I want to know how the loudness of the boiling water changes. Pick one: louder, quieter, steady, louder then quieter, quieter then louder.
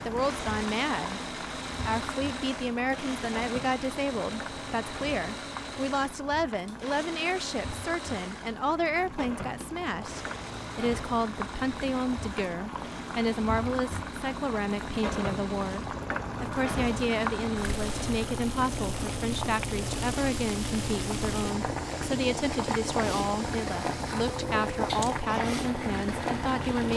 louder.